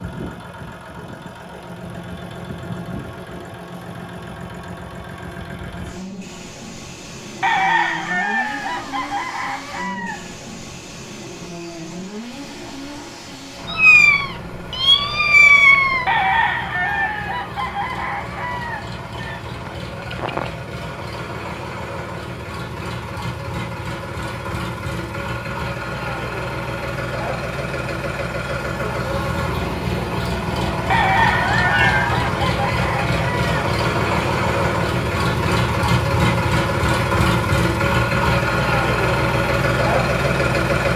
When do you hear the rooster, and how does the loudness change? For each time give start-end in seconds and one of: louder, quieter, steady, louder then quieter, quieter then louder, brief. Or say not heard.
7.4-10.2 brief
16.1-20.5 quieter
30.9-33.5 brief.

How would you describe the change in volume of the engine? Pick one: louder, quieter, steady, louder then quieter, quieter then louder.
louder.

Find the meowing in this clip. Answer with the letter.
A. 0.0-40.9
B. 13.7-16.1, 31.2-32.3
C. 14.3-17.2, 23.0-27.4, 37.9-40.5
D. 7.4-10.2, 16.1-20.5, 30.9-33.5
B.